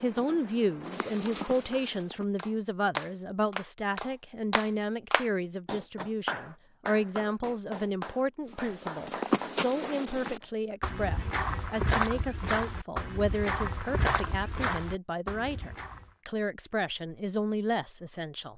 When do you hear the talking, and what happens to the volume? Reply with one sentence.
The talking can be heard from 0.0 to 18.5 s, at a steady volume.